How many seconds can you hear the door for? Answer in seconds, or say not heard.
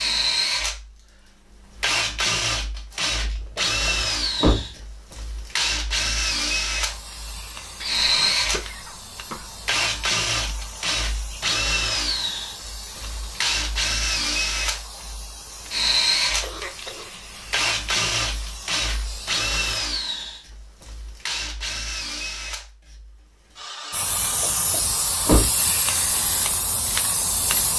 2 s.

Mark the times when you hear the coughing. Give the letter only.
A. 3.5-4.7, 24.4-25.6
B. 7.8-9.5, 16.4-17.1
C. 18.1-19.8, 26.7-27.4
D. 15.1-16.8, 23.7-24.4
B.